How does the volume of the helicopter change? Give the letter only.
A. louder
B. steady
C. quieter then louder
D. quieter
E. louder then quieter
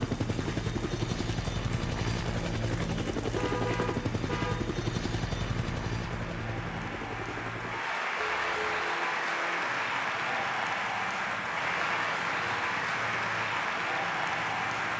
D.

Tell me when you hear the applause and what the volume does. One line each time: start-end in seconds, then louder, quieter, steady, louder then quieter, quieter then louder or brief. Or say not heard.
0.0-14.9 louder.